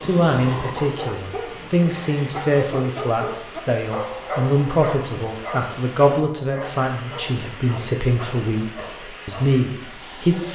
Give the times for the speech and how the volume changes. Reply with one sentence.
You can hear the speech from 0.0 to 10.5 s, at a steady volume.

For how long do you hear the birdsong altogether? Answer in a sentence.
You can't hear the birdsong here.